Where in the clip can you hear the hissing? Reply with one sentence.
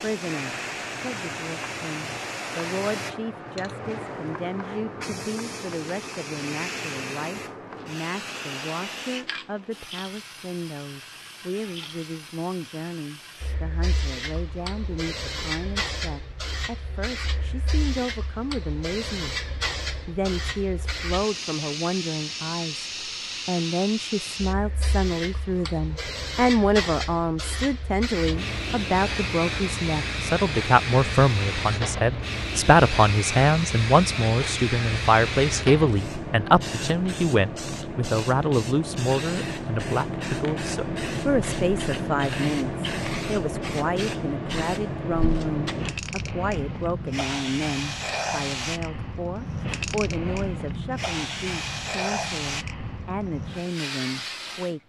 You can hear the hissing from 0.0 to 54.8 s.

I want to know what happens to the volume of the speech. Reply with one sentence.
The loudness of the speech goes up, then down.